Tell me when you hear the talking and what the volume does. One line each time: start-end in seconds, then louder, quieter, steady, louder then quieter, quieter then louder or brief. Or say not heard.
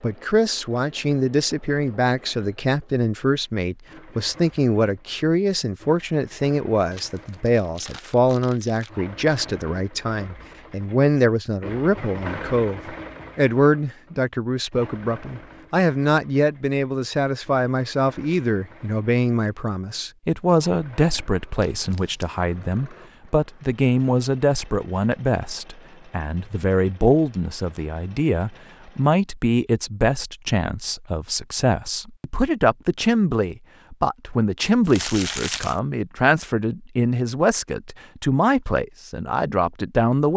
0.0-40.3 steady.